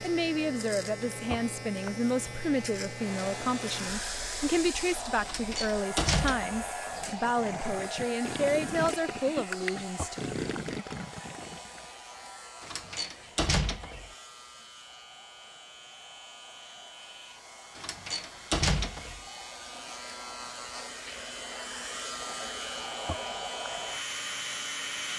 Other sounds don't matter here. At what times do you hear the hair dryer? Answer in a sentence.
The hair dryer can be heard from 2.9 to 25.1 s.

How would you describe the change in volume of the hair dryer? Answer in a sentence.
The volume of the hair dryer goes down, then up.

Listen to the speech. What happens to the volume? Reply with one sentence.
The volume of the speech stays about the same.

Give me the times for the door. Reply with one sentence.
The door can be heard from 5.2 to 6.7 s, from 12.6 to 14.1 s and from 17.8 to 19.2 s.